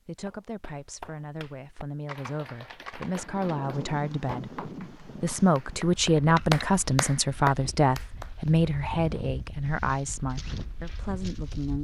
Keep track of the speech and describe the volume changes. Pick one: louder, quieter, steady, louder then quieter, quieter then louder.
louder then quieter.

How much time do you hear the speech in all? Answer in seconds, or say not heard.
12 s.